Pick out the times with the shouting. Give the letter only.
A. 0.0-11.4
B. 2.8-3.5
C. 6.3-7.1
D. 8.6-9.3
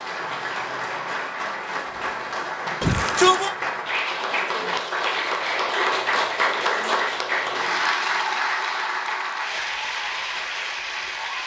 B.